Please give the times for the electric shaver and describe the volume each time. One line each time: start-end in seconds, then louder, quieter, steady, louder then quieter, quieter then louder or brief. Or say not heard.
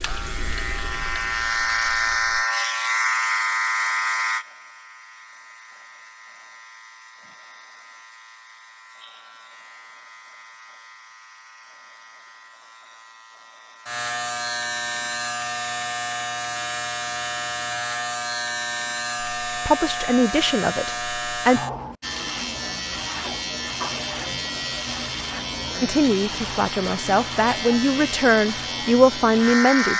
0.0-29.9 quieter then louder.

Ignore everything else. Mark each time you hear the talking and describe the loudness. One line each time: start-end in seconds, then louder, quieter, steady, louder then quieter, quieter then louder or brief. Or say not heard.
19.4-21.6 brief
25.8-29.9 louder.